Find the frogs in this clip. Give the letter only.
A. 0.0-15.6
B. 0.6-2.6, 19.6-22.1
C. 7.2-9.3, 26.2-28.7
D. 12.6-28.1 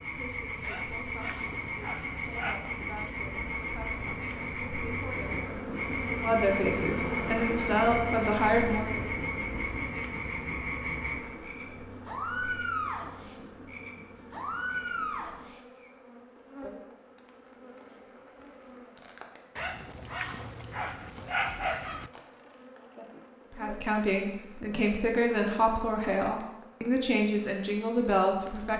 A.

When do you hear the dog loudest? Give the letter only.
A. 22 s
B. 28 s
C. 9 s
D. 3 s
A.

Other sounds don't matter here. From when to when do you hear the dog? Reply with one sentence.
You can hear the dog from 0.6 to 2.6 s and from 19.6 to 22.1 s.